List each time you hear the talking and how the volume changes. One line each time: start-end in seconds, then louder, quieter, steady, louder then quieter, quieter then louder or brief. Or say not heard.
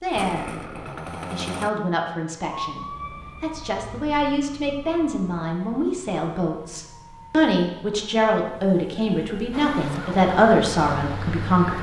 0.0-11.7 louder.